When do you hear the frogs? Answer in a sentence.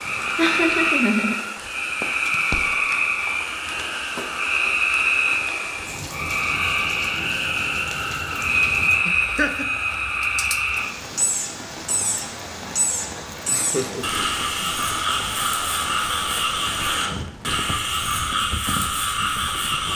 You can hear the frogs from 0.0 to 19.9 s.